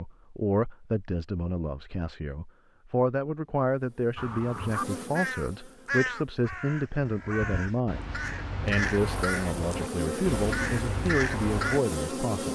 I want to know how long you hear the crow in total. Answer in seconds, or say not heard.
8 s.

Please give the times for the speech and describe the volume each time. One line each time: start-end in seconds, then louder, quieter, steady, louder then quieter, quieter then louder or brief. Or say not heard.
0.0-12.5 steady.